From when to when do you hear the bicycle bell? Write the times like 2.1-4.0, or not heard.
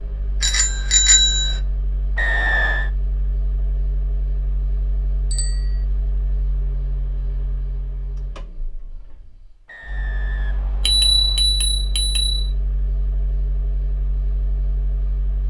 0.4-1.6, 5.3-5.8, 10.8-12.5.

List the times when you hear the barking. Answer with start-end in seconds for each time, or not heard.
not heard.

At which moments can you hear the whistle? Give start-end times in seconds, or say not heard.
2.1-2.9, 9.7-11.4.